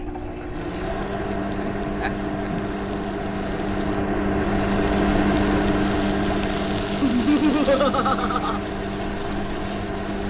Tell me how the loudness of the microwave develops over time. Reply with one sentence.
The loudness of the microwave goes up, then down.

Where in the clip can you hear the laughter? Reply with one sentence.
The laughter can be heard from 1.5 to 2.8 s and from 7.0 to 8.6 s.